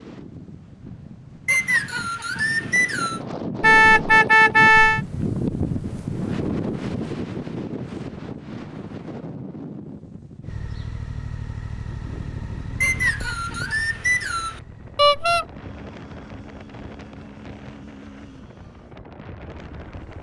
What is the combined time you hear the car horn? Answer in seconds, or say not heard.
2 s.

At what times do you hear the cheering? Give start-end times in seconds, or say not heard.
not heard.